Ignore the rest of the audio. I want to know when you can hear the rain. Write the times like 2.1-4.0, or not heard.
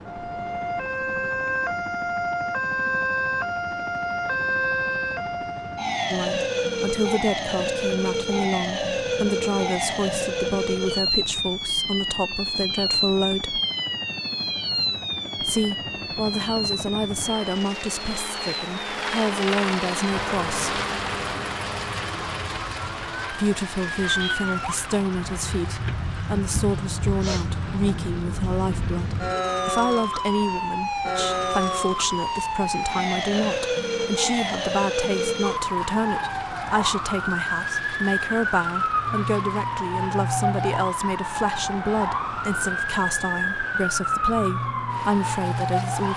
not heard.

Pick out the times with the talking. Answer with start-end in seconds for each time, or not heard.
6.1-13.6, 15.4-20.8, 23.3-46.1.